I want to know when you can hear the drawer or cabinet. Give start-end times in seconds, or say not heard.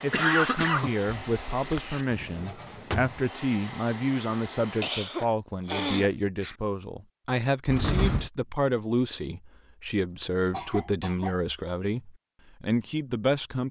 2.1-3.2, 7.7-8.3.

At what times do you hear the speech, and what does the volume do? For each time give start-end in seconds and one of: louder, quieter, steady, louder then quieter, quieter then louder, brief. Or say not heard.
0.0-13.6 steady.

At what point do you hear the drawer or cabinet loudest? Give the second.
8 s.